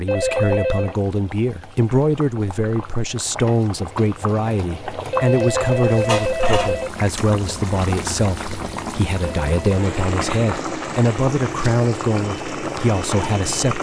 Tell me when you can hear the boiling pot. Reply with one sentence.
The boiling pot can be heard from 0.0 to 13.7 s.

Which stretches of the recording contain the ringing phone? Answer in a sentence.
You can hear the ringing phone from 0.1 to 0.9 s, from 5.1 to 6.9 s and from 9.4 to 9.8 s.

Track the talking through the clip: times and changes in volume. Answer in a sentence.
The talking can be heard from 0.0 to 13.7 s, at a steady volume.